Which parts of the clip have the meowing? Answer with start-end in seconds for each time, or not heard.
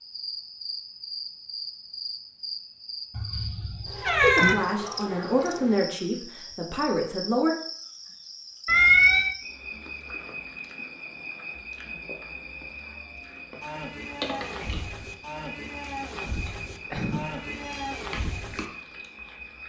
3.1-4.5, 8.7-9.3, 16.9-18.1.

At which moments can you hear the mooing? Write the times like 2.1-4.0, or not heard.
13.6-18.6.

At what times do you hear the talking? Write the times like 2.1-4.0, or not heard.
4.2-7.5.